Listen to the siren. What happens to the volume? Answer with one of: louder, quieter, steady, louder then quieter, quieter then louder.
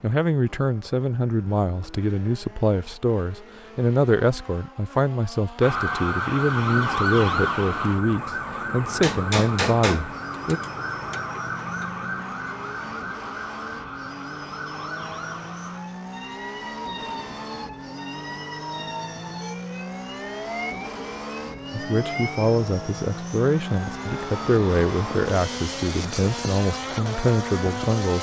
quieter.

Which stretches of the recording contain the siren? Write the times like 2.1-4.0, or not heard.
5.6-28.1.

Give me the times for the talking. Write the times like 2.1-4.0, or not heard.
0.0-10.6, 21.7-28.1.